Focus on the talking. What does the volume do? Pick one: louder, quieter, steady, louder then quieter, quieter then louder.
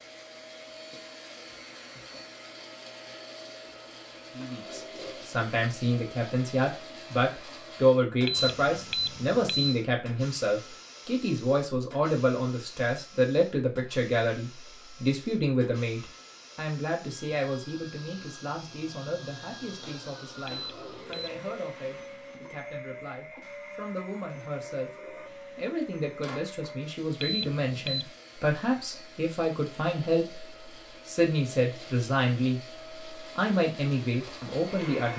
quieter then louder.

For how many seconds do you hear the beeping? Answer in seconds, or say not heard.
3 s.